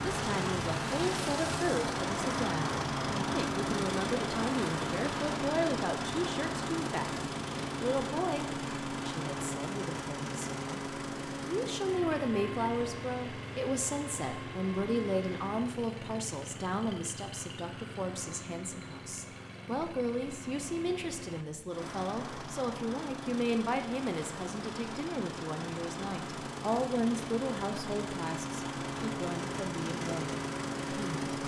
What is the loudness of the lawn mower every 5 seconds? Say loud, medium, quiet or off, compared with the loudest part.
loud, loud, medium, medium, medium, medium, loud.